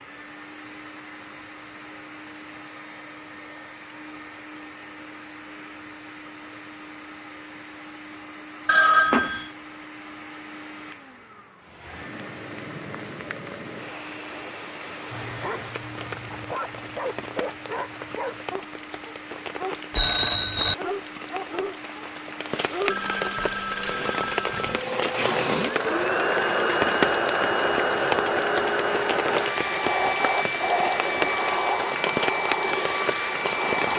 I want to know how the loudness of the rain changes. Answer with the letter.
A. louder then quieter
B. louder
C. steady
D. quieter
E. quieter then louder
B.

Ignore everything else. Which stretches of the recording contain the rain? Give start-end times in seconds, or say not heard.
11.6-33.9.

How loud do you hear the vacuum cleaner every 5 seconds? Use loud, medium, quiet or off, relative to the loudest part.
quiet, quiet, quiet, quiet, quiet, loud, loud.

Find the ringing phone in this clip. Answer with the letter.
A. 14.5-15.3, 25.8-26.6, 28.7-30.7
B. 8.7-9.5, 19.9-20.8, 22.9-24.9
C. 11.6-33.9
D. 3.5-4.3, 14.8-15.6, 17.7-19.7
B.